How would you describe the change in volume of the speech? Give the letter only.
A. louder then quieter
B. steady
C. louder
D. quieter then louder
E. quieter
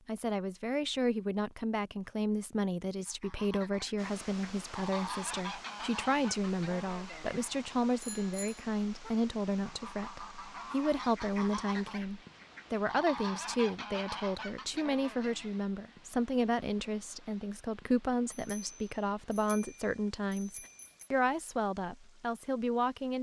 B.